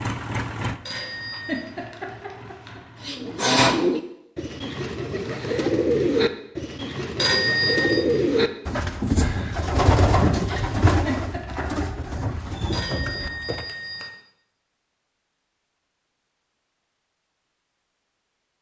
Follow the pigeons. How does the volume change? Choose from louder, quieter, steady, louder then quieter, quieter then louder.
quieter.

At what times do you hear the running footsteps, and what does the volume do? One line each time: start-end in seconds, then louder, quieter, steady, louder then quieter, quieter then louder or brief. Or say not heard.
not heard.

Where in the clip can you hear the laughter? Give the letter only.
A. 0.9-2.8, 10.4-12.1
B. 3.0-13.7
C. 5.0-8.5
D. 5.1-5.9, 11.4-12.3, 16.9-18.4
A.